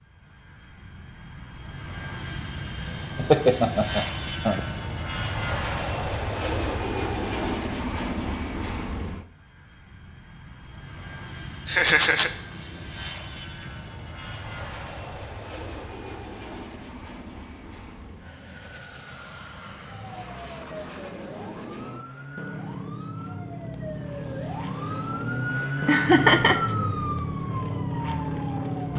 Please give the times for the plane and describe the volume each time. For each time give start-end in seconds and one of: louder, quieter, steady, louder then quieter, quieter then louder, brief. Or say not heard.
0.1-28.9 quieter then louder.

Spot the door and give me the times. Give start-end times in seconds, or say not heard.
not heard.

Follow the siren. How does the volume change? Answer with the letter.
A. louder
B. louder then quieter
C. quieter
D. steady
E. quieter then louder
B.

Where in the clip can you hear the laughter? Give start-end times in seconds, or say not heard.
3.1-4.6, 11.7-12.3, 25.9-26.6.